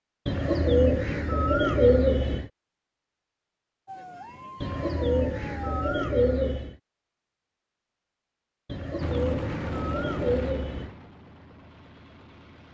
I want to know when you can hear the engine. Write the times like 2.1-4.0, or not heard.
9.0-12.6.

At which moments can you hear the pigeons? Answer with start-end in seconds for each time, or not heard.
0.2-2.5, 4.6-6.8, 8.7-10.9.